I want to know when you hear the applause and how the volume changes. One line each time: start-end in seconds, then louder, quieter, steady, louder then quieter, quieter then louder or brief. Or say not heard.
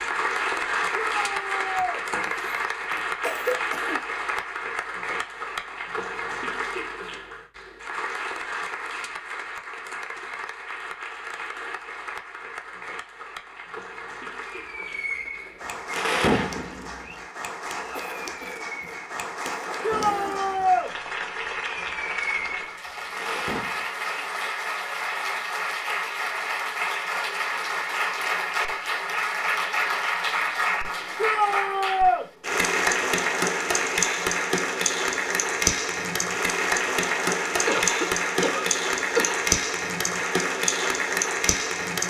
0.0-42.0 quieter then louder.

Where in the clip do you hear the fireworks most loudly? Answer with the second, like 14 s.
16 s.